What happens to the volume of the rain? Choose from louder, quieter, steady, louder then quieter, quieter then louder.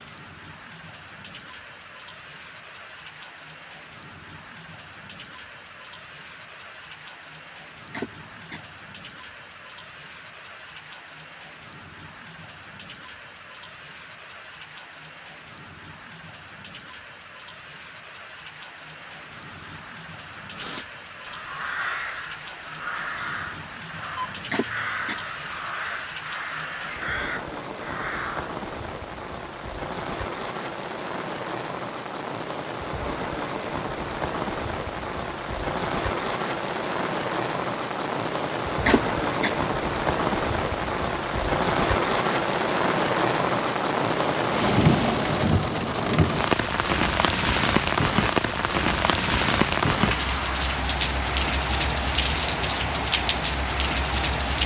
louder.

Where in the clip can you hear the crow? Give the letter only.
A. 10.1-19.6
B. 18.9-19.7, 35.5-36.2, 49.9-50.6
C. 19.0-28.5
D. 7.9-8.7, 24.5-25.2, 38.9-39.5
C.